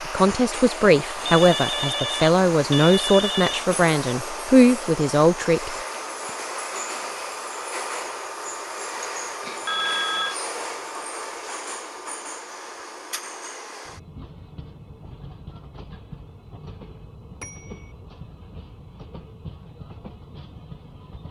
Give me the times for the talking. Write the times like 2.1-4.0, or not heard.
0.0-5.8.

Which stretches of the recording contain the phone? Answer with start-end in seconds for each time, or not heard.
1.2-3.9, 9.7-10.3, 17.4-17.9.